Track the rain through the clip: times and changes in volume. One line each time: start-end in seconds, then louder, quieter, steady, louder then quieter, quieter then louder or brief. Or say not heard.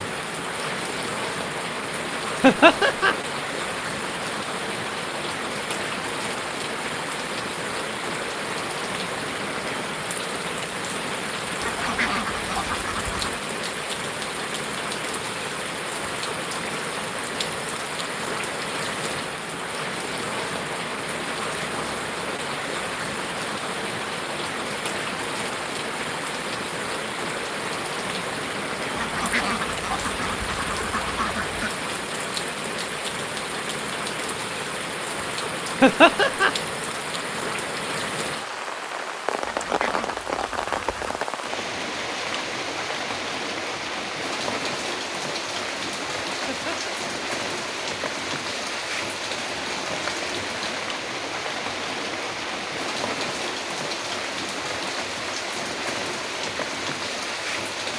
0.0-57.9 steady.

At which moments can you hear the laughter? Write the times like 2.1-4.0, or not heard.
2.4-3.1, 35.8-36.5, 46.5-46.9.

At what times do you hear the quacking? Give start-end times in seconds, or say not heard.
11.6-13.4, 28.9-31.7, 39.4-41.2.